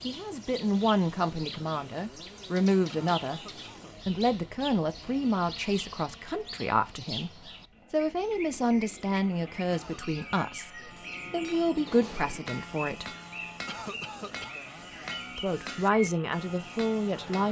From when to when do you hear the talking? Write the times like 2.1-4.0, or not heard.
0.1-13.2, 15.3-17.4.